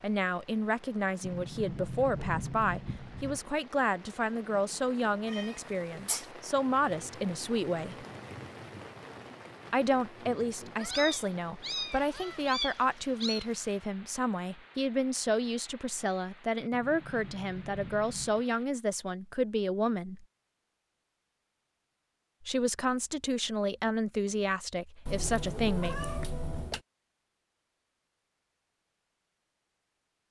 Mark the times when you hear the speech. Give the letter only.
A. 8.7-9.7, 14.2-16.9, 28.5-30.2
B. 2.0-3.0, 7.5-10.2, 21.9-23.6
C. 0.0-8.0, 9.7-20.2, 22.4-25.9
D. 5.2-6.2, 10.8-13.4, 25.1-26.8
C.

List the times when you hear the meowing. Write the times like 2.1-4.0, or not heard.
5.2-6.2, 10.8-13.4, 25.1-26.8.